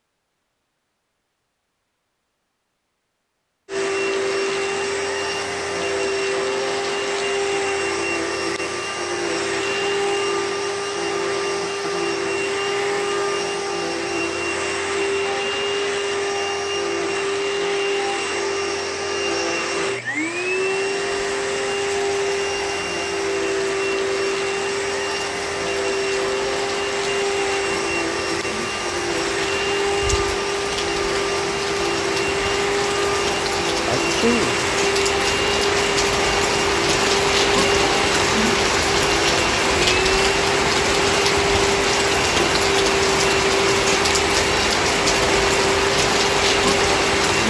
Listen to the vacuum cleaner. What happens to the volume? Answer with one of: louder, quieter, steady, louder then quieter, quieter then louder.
steady.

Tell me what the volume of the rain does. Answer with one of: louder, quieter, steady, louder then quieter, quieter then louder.
louder.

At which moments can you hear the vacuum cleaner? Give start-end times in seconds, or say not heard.
3.6-47.4.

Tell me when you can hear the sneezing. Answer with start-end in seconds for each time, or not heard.
33.9-34.5.